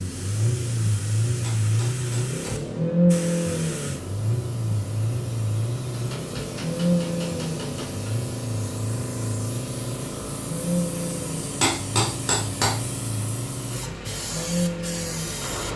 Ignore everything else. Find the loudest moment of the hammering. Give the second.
12 s.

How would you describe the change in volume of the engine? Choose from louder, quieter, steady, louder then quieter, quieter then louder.
quieter.